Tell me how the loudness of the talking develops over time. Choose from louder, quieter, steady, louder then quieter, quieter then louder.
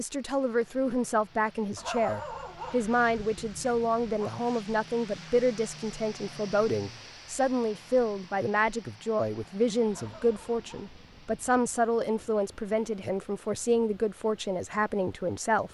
steady.